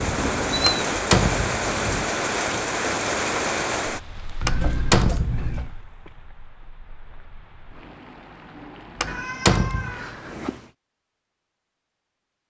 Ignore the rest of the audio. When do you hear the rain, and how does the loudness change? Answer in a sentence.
The rain can be heard from 0.0 to 10.4 s, getting quieter then louder.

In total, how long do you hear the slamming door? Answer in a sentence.
You can hear the slamming door for 3 seconds altogether.